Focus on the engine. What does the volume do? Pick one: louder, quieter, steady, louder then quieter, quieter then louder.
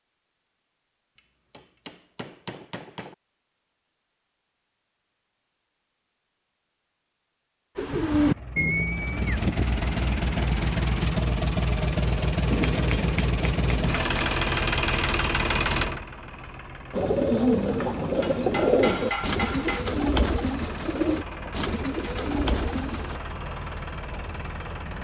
quieter.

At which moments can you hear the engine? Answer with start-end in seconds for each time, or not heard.
8.2-24.9.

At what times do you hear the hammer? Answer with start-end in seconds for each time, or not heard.
1.5-3.1, 12.5-14.3, 17.8-19.9.